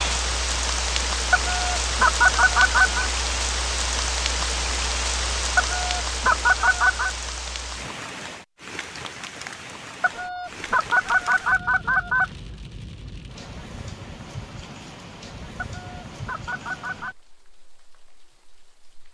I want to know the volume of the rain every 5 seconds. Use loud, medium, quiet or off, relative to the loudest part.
loud, medium, quiet, quiet.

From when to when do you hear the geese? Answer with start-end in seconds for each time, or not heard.
1.3-3.1, 5.5-7.1, 10.0-12.3, 15.6-17.1.